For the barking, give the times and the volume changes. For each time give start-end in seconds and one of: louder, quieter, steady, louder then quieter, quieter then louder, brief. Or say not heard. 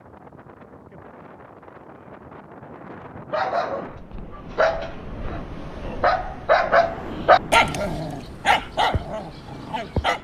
3.3-10.2 louder then quieter.